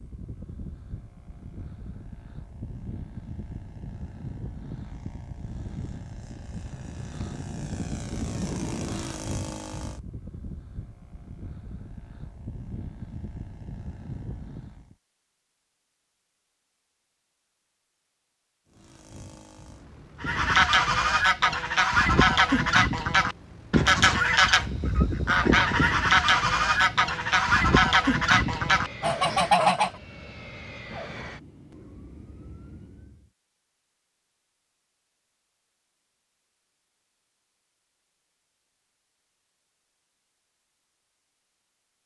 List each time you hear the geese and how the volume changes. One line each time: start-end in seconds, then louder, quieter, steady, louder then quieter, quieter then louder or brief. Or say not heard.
20.2-29.9 steady.